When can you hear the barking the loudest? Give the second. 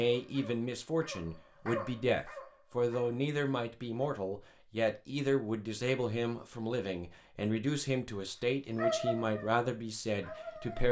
9 s.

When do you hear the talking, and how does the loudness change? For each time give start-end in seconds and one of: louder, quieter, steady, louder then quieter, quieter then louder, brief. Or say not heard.
0.0-10.8 steady.